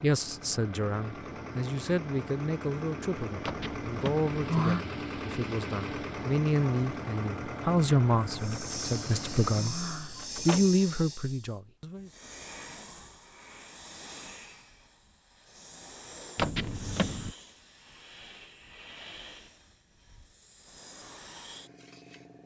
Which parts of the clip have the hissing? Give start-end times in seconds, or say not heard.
8.2-22.4.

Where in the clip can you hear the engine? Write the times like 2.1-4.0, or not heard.
0.0-9.8.